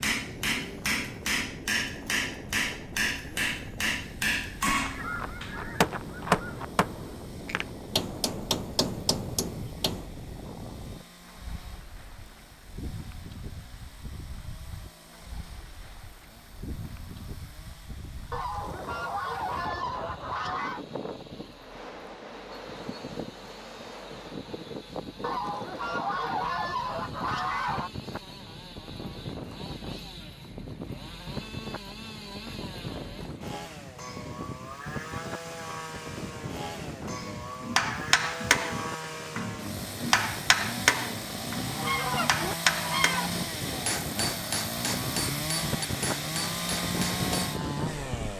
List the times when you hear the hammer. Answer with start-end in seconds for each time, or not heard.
0.0-10.1, 37.0-47.5.